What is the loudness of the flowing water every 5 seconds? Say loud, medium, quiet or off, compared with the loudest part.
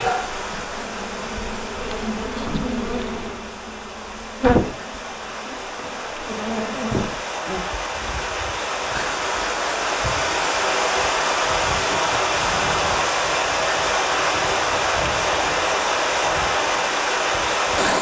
quiet, medium, loud, loud.